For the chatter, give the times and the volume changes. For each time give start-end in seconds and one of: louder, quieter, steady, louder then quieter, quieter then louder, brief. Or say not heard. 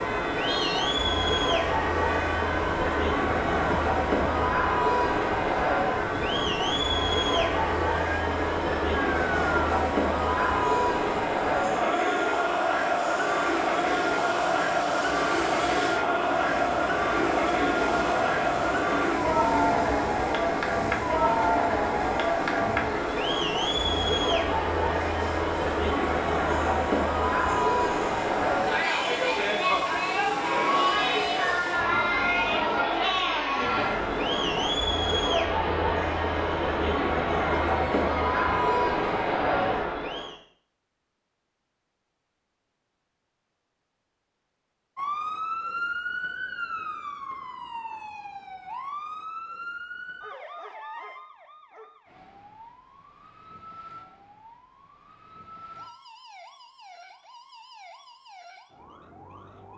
0.0-40.4 steady.